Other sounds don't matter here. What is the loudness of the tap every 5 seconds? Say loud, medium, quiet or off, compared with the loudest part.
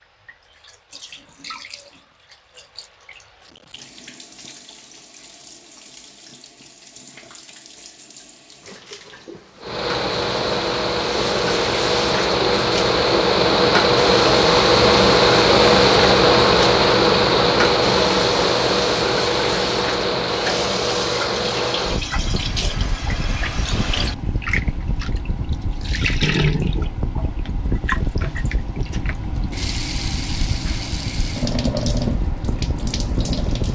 quiet, quiet, loud, loud, loud, loud, loud.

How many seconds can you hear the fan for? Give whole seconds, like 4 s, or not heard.
24 s.